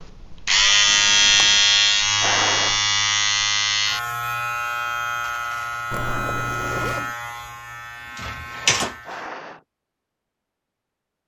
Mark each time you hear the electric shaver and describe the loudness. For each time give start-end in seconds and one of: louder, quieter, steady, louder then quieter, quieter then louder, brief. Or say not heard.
0.0-9.3 quieter.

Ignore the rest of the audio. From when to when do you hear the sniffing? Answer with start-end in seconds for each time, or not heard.
2.2-2.8, 9.1-9.7.